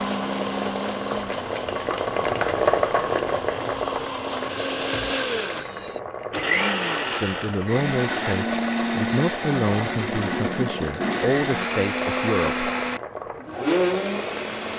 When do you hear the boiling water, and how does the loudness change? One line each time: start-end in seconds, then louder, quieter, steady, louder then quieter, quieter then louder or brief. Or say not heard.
0.0-14.7 quieter.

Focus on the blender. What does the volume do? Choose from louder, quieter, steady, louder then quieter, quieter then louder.
louder.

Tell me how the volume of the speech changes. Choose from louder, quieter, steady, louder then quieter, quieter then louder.
steady.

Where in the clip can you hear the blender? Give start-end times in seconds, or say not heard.
0.0-14.7.